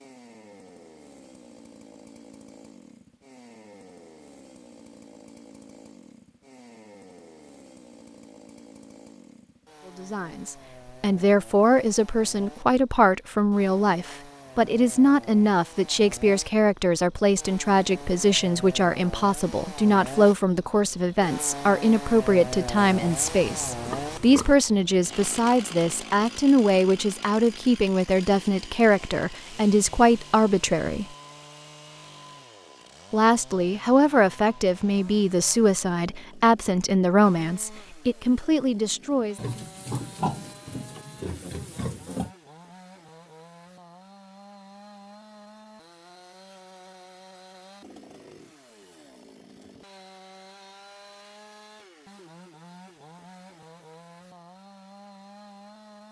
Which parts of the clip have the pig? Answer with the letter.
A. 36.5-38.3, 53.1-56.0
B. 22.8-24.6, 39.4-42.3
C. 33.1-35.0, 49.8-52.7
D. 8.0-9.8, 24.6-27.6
B.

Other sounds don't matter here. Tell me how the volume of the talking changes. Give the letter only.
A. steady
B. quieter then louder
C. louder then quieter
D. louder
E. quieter
A.